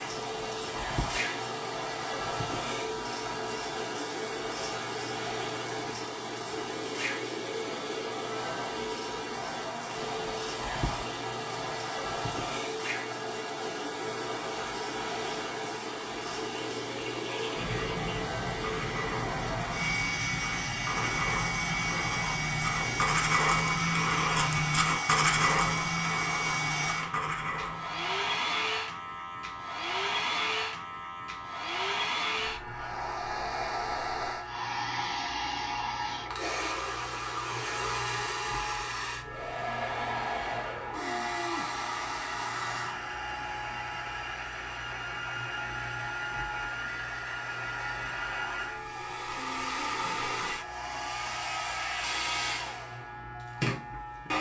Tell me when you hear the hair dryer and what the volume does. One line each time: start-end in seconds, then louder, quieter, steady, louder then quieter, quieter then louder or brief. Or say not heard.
0.0-54.3 steady.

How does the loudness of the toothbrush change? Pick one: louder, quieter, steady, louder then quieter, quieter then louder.
louder then quieter.